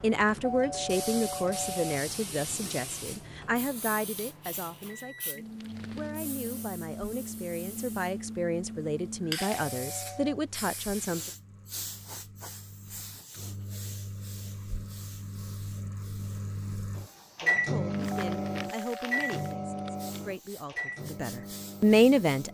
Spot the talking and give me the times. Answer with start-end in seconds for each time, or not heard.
0.0-11.3, 17.4-22.4.